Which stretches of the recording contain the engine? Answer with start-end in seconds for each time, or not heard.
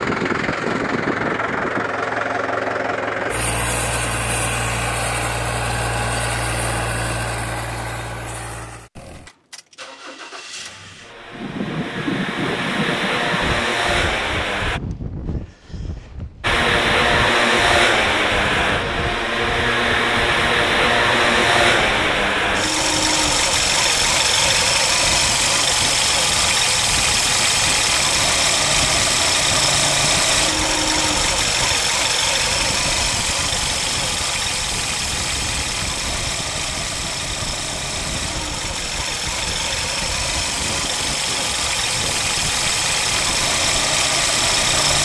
0.0-14.8, 16.4-45.0.